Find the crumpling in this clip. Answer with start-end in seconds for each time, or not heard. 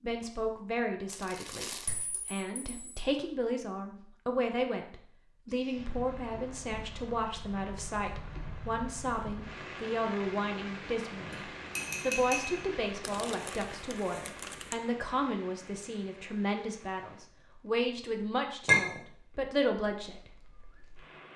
1.1-2.0, 13.0-14.8.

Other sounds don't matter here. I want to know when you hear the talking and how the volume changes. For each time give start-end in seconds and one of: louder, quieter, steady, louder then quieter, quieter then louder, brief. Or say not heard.
0.0-20.3 steady.